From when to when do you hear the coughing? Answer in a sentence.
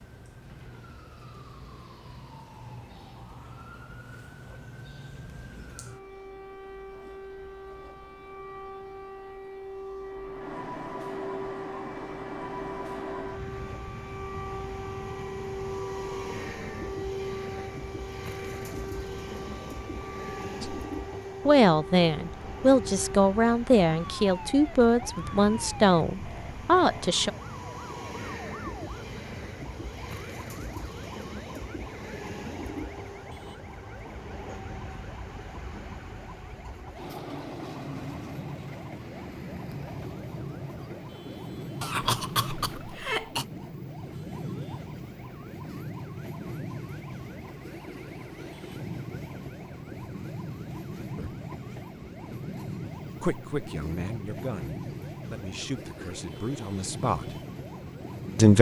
The coughing can be heard from 41.8 to 43.5 s.